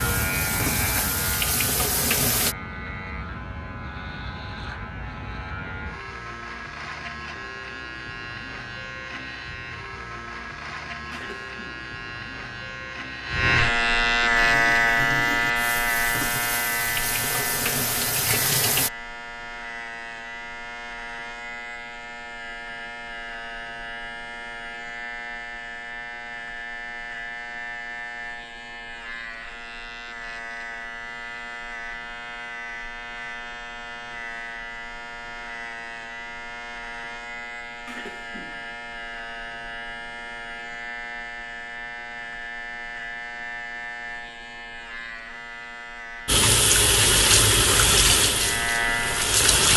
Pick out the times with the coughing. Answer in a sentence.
The coughing can be heard from 11.1 to 11.8 s and from 37.9 to 38.7 s.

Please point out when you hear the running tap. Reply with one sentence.
The running tap can be heard from 0.0 to 2.5 s, from 14.3 to 18.9 s and from 46.2 to 49.7 s.